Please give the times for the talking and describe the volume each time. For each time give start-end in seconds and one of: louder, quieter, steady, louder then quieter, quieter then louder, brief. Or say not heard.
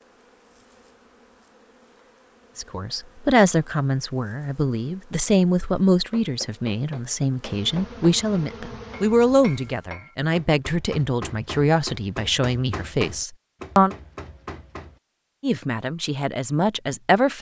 2.5-13.9 steady
15.4-17.3 brief.